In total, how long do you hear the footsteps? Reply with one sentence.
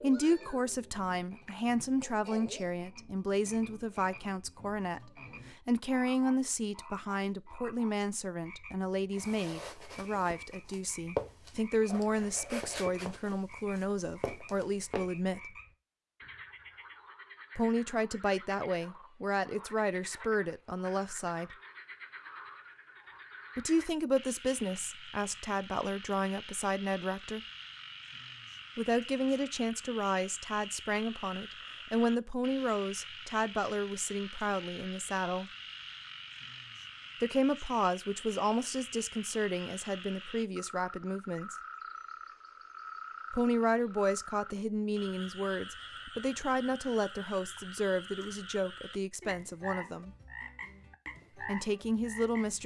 You can hear the footsteps for 6 seconds altogether.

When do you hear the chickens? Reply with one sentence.
The chickens can't be heard in this clip.